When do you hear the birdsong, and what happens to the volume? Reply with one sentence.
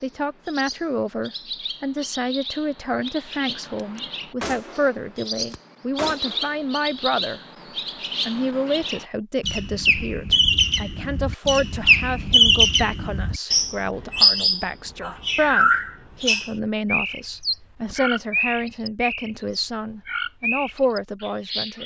You can hear the birdsong from 0.0 to 21.8 s, getting louder then quieter.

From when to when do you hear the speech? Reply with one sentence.
You can hear the speech from 0.0 to 7.4 s and from 8.2 to 21.8 s.